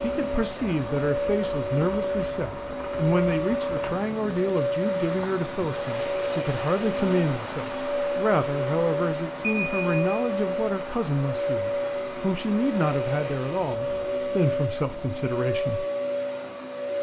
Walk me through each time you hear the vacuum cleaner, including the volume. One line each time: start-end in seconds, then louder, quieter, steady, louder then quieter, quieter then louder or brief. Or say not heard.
0.0-16.9 steady.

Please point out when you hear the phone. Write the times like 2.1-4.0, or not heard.
9.4-10.2.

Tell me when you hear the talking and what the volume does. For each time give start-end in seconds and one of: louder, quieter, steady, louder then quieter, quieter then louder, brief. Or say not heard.
0.0-15.8 steady.